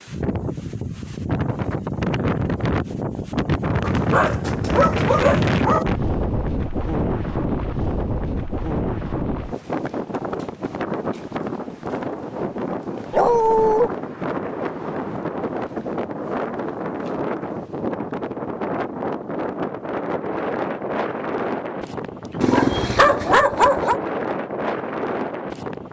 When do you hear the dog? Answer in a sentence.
The dog can be heard from 3.8 to 5.8 s, from 13.1 to 13.9 s and from 22.4 to 24.0 s.